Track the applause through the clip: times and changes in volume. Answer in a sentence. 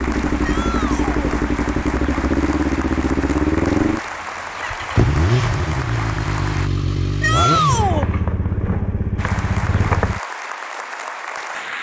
You can hear the applause from 0.0 to 6.7 s, at a steady volume; and briefly from 9.2 to 11.7 s.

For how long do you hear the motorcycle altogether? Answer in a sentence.
The motorcycle can be heard for 10 seconds in total.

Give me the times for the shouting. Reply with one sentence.
The shouting can be heard from 0.4 to 1.1 s and from 7.2 to 8.1 s.